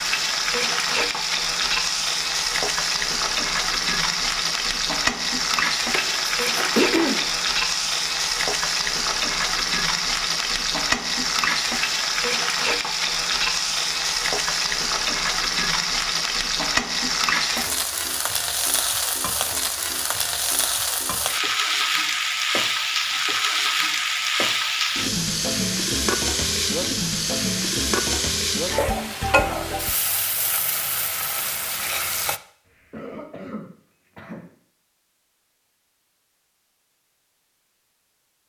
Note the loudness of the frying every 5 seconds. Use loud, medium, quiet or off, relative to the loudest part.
loud, loud, loud, loud, loud, loud, medium, off.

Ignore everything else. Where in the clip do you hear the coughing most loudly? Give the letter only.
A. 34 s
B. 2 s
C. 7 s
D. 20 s
C.